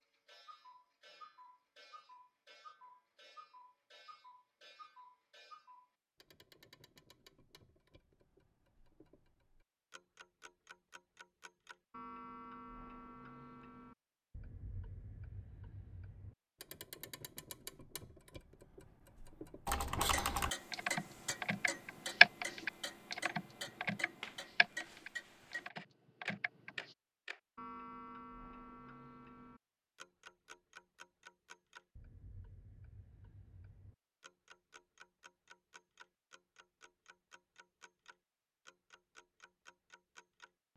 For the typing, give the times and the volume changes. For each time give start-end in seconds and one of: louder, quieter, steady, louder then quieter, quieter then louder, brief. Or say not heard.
19.6-26.9 louder then quieter.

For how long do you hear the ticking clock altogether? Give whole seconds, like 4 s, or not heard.
41 s.